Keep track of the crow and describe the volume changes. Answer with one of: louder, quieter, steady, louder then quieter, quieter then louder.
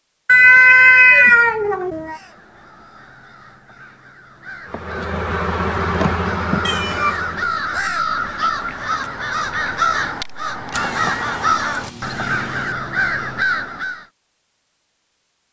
louder.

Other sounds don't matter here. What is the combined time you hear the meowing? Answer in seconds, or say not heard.
6 s.